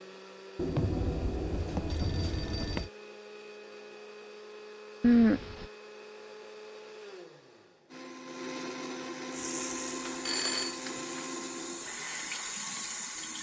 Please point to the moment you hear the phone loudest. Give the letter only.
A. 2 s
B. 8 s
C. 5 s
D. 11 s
C.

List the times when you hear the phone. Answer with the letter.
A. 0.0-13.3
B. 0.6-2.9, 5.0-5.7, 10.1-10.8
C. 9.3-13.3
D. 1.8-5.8
B.